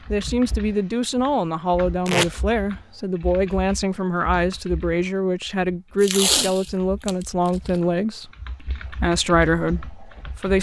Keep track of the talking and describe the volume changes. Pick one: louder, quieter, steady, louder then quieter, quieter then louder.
steady.